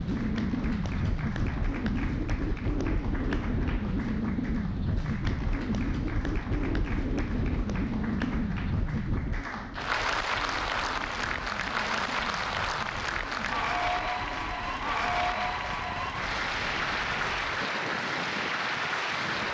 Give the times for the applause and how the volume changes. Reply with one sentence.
You can hear the applause from 0.0 to 19.4 s, getting louder.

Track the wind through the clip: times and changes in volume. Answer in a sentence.
You can hear the wind from 0.0 to 19.4 s, getting quieter.